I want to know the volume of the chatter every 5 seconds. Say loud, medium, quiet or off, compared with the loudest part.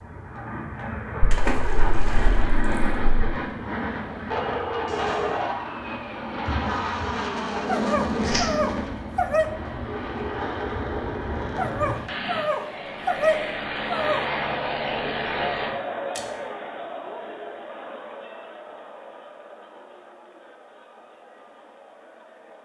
off, off, loud, loud, quiet.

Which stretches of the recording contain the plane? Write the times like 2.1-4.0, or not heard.
0.0-15.8.